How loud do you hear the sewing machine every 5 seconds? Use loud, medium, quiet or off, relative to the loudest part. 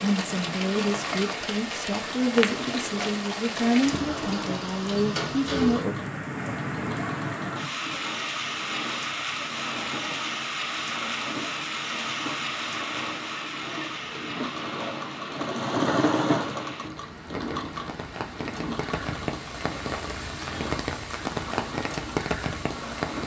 medium, medium, medium, loud, medium.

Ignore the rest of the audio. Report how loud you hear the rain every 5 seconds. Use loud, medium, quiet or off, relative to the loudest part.
loud, loud, loud, medium, loud.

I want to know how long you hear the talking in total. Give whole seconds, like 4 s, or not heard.
6 s.